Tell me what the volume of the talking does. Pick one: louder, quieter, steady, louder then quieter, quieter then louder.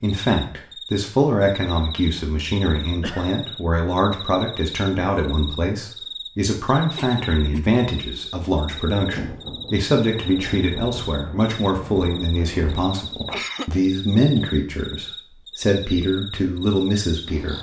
steady.